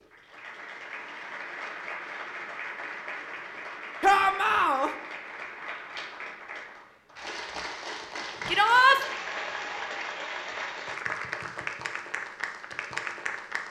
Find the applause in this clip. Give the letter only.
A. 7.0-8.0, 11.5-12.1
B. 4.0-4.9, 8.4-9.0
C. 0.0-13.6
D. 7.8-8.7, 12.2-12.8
C.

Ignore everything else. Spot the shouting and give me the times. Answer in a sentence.
The shouting can be heard from 4.0 to 4.9 s and from 8.4 to 9.0 s.